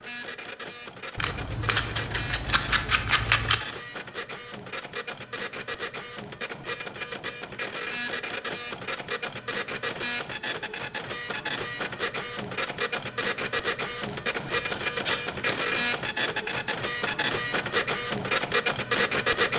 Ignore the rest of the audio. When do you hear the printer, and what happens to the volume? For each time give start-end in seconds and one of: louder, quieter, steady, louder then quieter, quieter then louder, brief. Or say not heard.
0.0-19.5 louder.